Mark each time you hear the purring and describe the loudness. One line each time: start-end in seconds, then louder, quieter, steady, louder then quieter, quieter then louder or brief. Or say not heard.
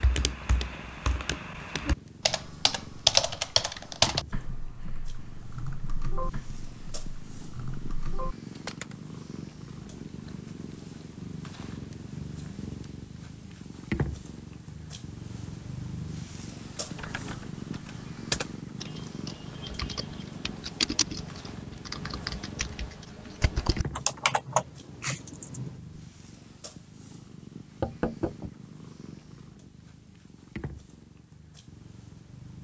0.0-32.5 louder then quieter.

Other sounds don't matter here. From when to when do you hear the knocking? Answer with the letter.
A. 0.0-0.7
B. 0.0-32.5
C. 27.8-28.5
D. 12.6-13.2
C.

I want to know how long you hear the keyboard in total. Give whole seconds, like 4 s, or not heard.
18 s.